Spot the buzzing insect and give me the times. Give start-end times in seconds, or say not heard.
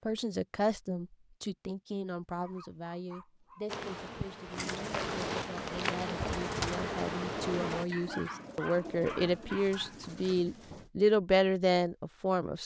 3.6-7.8.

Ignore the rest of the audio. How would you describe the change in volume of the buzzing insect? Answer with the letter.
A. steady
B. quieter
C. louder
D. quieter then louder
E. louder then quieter
C.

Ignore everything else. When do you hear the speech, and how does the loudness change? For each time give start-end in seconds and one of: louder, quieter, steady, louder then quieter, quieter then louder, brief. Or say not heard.
0.1-12.6 quieter then louder.